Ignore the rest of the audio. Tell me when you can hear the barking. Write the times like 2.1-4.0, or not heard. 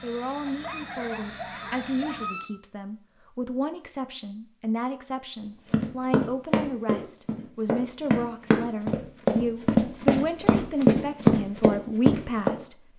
0.5-2.5.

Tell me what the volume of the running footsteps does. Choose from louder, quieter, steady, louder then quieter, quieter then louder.
louder.